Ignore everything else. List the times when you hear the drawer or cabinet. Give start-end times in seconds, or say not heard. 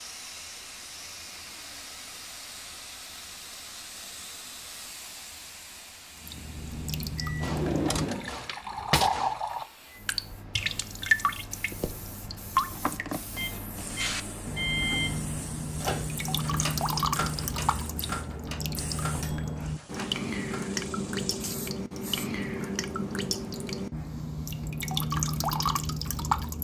7.4-9.2.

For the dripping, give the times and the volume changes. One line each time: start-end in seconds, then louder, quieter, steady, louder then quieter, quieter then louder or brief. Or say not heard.
6.2-26.5 steady.